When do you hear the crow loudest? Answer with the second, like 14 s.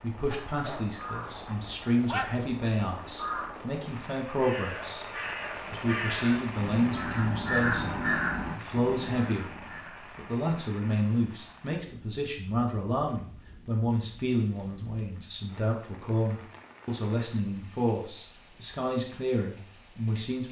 8 s.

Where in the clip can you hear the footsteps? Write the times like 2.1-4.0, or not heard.
not heard.